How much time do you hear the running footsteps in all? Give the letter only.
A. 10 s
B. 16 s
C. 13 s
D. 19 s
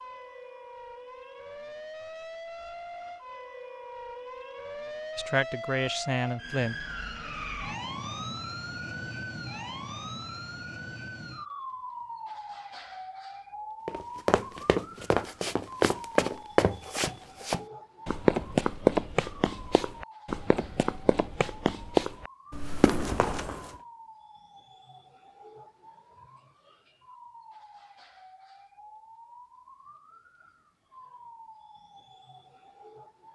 A.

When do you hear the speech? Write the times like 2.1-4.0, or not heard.
5.2-6.8.